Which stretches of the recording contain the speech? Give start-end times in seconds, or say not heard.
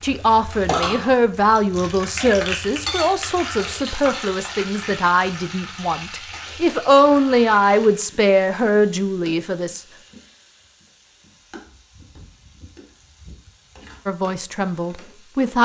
0.0-9.8, 14.1-15.6.